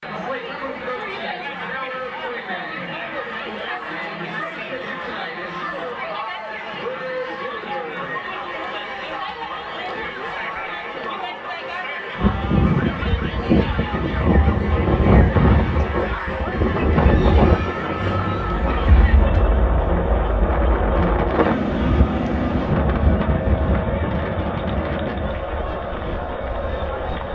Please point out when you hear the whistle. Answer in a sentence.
You can't hear the whistle here.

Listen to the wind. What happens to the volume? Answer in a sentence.
The loudness of the wind goes down.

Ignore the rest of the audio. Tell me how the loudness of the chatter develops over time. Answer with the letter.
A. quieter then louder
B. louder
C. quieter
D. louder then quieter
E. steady
E.